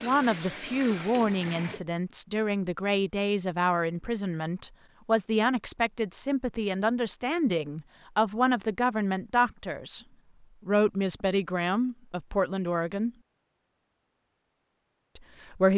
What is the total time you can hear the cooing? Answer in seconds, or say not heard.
2 s.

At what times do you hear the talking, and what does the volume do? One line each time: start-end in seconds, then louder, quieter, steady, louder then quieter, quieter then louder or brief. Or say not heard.
0.0-10.0 steady
10.7-13.1 brief
15.2-15.7 brief.